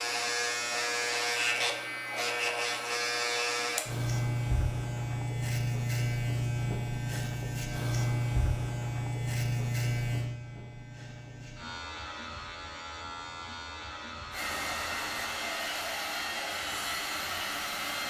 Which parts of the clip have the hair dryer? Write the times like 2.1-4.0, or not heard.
14.3-18.0.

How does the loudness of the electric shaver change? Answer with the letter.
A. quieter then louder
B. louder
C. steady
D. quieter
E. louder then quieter
D.